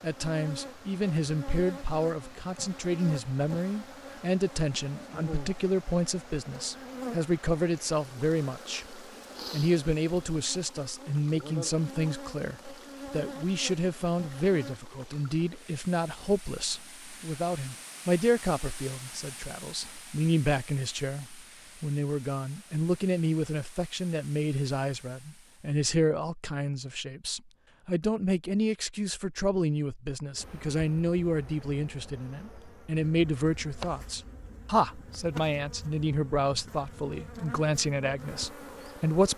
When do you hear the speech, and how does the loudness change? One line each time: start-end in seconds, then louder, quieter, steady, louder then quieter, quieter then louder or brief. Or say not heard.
0.0-39.3 steady.